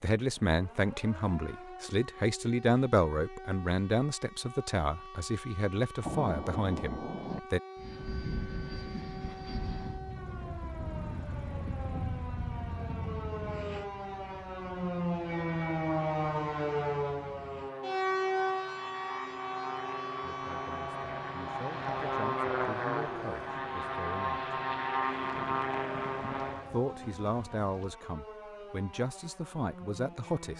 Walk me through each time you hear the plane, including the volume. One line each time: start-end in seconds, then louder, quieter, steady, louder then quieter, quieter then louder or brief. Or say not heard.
7.8-26.7 quieter then louder.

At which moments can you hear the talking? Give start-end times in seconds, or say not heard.
0.0-7.6, 20.2-24.6, 26.7-30.5.